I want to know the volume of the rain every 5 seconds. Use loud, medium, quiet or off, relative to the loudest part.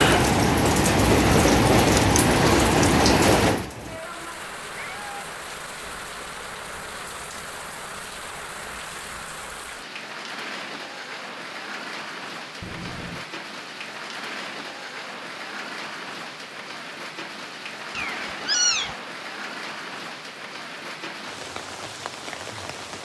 loud, quiet, quiet, quiet, quiet.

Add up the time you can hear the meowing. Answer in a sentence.
You can hear the meowing for 2 seconds altogether.